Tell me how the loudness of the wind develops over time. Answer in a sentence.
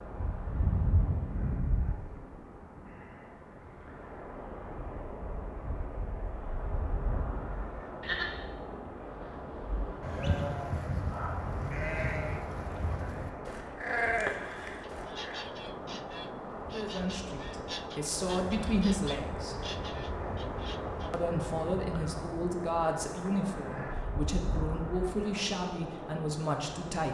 The volume of the wind stays about the same.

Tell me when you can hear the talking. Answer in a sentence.
You can hear the talking from 16.7 to 19.6 s and from 21.1 to 27.0 s.